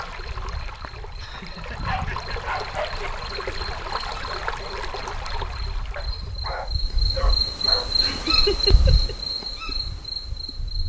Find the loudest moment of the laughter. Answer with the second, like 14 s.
9 s.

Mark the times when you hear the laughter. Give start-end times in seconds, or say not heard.
1.1-2.4, 8.0-9.2.